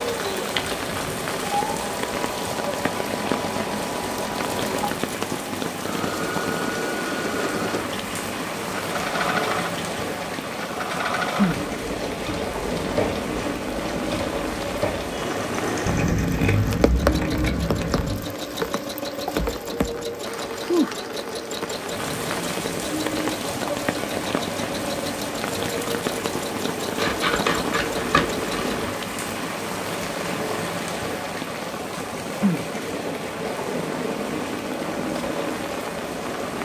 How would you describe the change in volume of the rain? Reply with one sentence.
The volume of the rain stays about the same.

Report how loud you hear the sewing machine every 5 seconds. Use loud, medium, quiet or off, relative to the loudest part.
loud, loud, loud, loud, loud, loud, off, off.